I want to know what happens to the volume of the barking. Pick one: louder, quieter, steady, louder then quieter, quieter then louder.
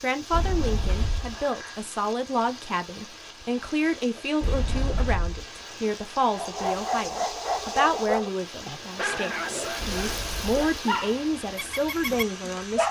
quieter.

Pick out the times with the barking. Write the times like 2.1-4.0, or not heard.
6.3-12.8.